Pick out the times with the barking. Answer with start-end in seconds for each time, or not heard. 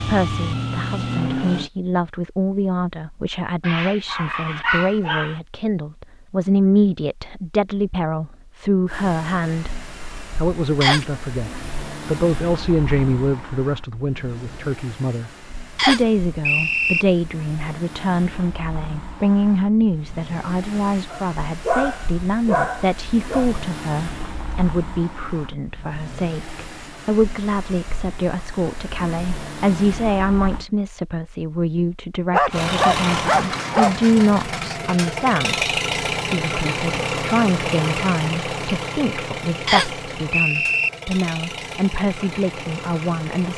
3.6-5.3, 21.1-23.4, 32.3-34.0.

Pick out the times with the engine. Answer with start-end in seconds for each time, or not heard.
0.0-1.7, 8.8-30.6, 32.5-43.5.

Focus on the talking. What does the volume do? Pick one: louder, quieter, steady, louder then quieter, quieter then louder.
steady.